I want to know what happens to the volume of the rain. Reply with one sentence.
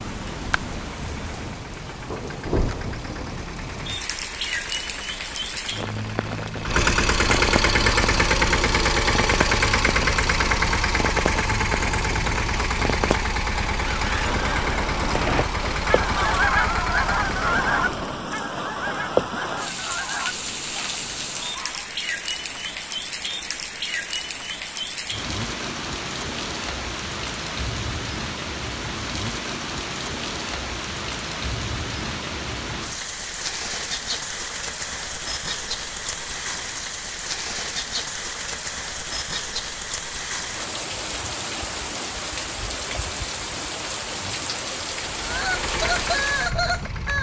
The volume of the rain stays about the same.